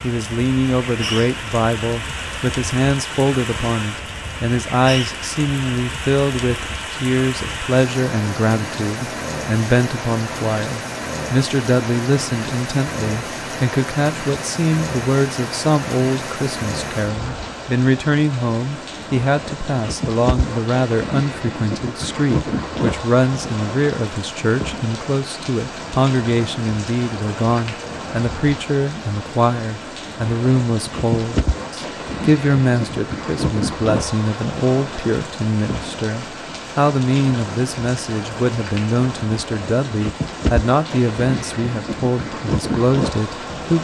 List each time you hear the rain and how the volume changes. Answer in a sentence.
The rain can be heard from 0.0 to 43.8 s, at a steady volume.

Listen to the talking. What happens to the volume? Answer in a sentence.
The loudness of the talking stays about the same.